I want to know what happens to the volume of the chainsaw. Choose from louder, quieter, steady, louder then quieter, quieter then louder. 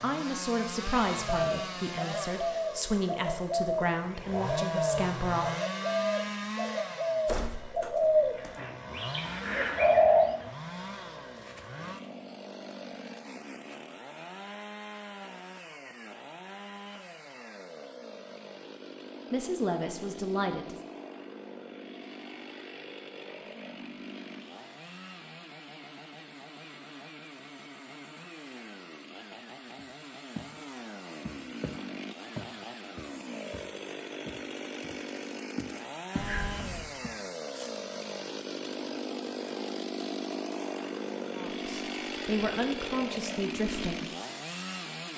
quieter then louder.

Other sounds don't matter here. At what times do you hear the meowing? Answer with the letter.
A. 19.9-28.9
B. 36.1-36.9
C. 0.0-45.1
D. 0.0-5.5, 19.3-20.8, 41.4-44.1
B.